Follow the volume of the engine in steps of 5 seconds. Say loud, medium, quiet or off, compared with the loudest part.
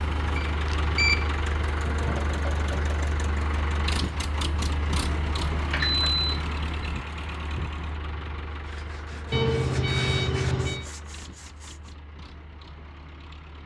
loud, loud, quiet.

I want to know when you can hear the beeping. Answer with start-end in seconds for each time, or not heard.
0.3-1.3, 5.7-6.8, 9.3-10.8.